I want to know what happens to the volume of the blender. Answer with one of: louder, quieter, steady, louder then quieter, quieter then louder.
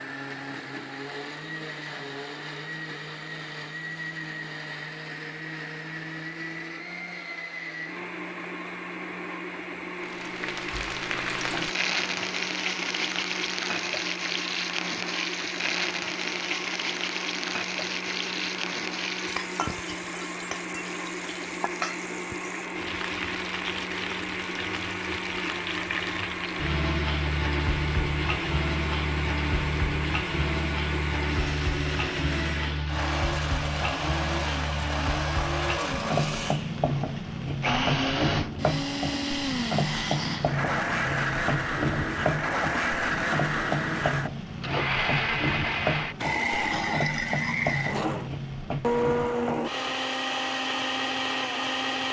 louder.